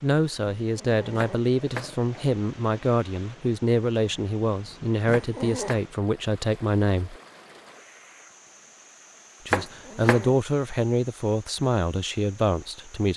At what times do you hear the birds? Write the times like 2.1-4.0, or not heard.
not heard.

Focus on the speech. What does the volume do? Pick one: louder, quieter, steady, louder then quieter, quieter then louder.
steady.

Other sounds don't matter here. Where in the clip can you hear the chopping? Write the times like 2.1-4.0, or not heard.
1.1-1.9, 5.1-5.8, 9.4-10.2.